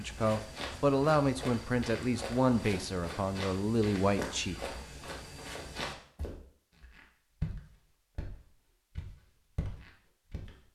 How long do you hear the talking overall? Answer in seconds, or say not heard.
5 s.